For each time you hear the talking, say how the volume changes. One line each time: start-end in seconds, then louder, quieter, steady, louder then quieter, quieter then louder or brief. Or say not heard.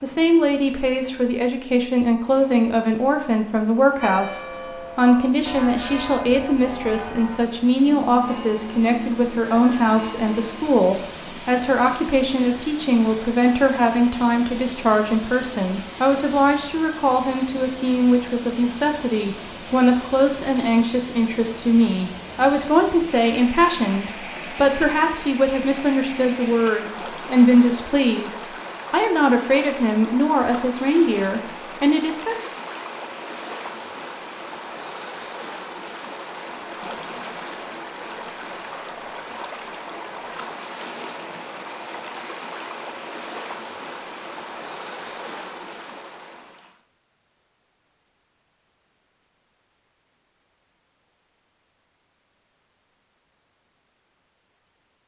0.0-32.4 steady.